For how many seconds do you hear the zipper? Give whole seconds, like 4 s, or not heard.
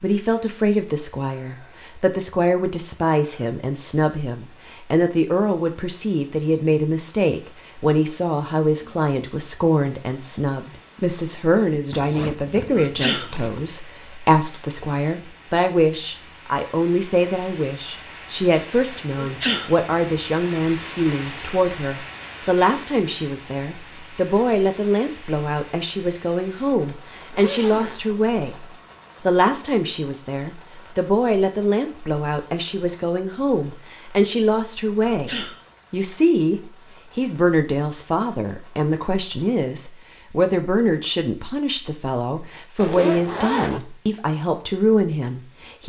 4 s.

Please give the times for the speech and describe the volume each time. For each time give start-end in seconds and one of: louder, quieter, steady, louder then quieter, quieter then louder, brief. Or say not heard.
0.0-45.8 steady.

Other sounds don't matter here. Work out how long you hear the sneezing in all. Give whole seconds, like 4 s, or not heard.
2 s.